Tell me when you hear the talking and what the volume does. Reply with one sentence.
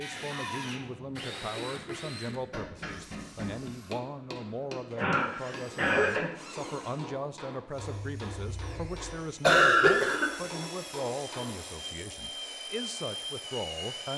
The talking can be heard from 0.0 to 14.1 s, at a steady volume.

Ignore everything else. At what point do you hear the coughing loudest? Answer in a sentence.
The volume of the coughing peaks at 10 seconds.